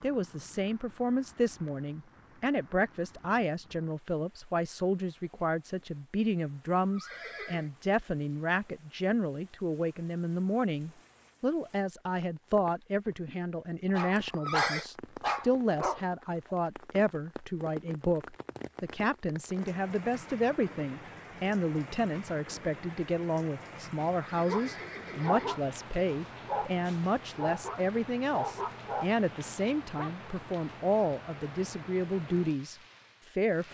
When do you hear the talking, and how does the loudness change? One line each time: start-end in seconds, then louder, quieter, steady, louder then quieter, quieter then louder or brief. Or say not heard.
0.0-33.6 steady.